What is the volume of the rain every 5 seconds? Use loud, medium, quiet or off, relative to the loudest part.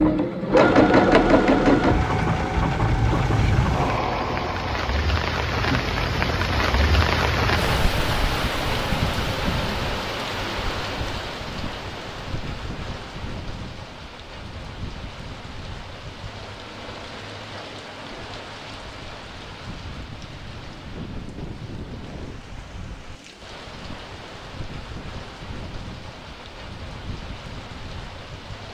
medium, loud, medium, quiet, quiet, quiet.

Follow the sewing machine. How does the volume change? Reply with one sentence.
The volume of the sewing machine goes down.